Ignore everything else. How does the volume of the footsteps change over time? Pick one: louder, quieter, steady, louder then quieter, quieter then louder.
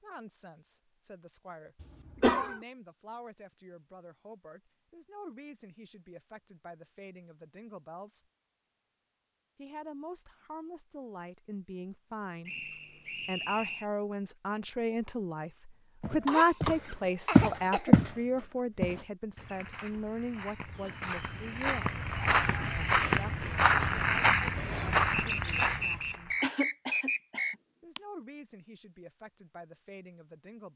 quieter then louder.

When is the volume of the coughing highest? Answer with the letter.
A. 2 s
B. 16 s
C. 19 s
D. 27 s
A.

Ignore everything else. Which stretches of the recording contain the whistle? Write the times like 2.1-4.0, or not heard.
12.4-13.8, 25.1-27.6.